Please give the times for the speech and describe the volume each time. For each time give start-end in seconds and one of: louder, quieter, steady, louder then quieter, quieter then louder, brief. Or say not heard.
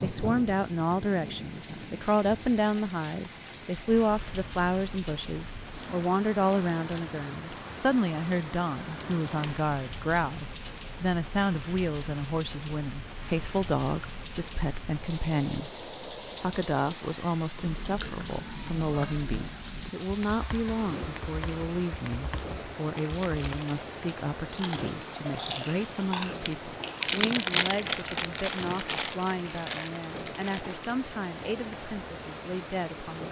0.0-33.2 quieter.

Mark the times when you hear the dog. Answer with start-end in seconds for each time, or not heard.
not heard.